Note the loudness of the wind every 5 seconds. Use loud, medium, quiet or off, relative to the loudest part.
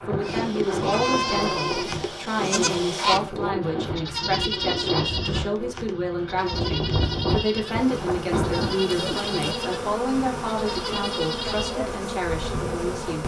loud, loud, off.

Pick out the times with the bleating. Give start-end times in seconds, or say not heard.
0.2-11.8.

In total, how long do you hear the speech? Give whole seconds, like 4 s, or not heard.
13 s.